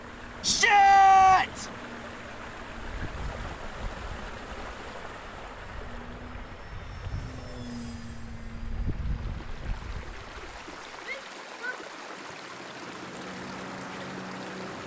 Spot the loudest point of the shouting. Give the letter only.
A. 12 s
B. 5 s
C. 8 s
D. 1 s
D.